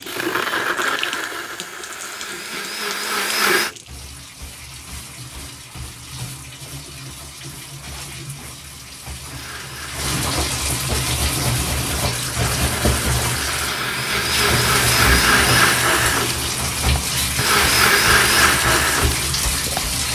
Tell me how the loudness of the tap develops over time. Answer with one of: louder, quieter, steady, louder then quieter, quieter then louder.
louder.